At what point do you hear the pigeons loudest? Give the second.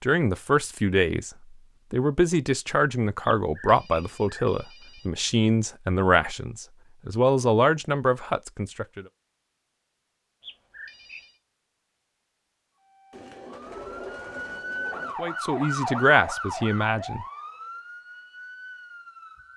14 s.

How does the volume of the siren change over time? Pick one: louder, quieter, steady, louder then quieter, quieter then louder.
louder then quieter.